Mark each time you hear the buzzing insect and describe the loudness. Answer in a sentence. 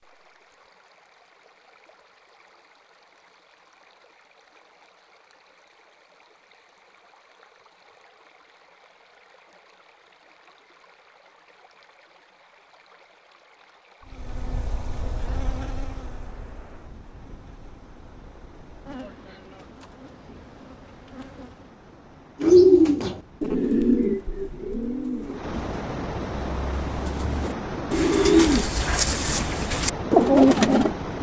You can hear the buzzing insect from 14.1 to 21.8 s, getting quieter then louder.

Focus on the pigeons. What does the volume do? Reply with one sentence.
The loudness of the pigeons goes down, then up.